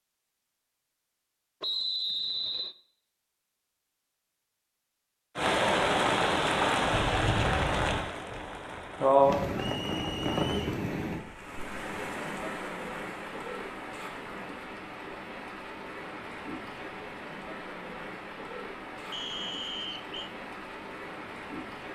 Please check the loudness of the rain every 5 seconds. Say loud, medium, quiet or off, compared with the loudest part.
off, loud, medium, quiet, quiet.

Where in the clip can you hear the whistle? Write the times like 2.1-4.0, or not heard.
1.6-2.8, 9.6-10.8, 19.1-20.3.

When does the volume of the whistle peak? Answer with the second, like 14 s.
2 s.